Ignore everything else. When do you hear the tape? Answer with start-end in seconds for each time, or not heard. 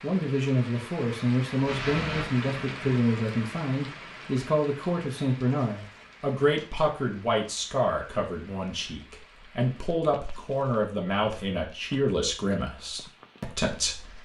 1.6-2.3, 5.5-6.7, 10.2-11.4.